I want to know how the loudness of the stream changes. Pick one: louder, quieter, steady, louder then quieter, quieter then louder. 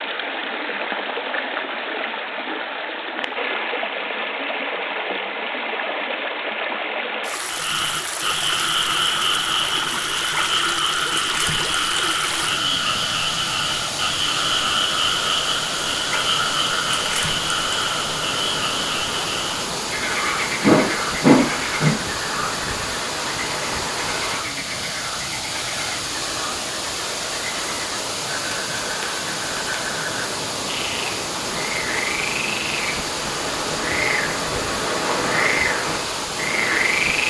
steady.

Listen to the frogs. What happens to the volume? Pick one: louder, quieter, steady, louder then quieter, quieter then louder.
quieter then louder.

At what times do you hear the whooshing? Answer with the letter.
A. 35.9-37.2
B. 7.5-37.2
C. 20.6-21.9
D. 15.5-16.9
C.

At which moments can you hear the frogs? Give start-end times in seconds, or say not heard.
7.5-37.2.